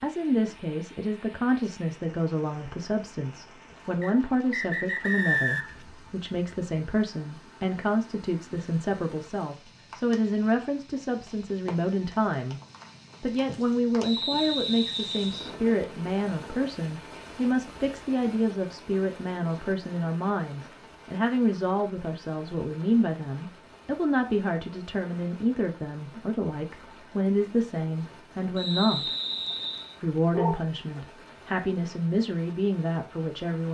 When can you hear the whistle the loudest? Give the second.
5 s.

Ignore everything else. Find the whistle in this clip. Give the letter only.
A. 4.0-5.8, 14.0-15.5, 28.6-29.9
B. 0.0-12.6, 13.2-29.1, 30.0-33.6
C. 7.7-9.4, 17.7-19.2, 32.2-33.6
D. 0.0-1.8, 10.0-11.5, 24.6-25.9
A.